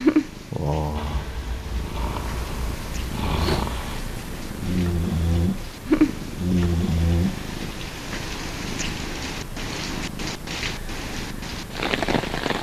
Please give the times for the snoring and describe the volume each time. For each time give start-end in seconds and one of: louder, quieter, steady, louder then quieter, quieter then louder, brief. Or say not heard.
0.9-7.7 louder.